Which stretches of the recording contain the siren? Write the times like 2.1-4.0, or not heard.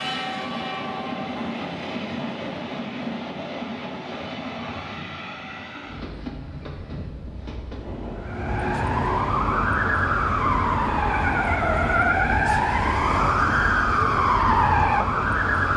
8.2-15.7.